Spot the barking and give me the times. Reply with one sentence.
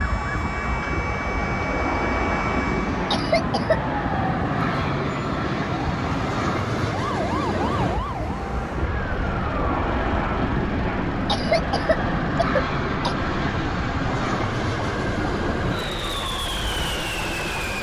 The barking can't be heard in this clip.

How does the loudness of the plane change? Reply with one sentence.
The volume of the plane stays about the same.